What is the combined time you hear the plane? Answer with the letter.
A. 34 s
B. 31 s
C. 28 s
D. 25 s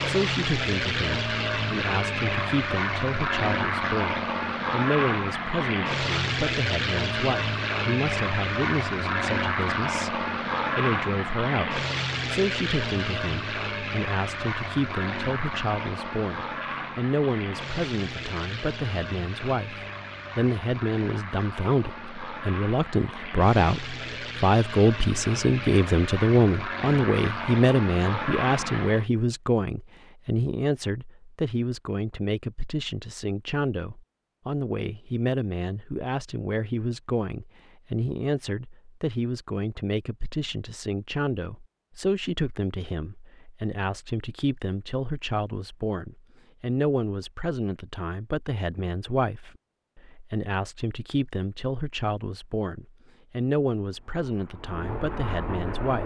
B.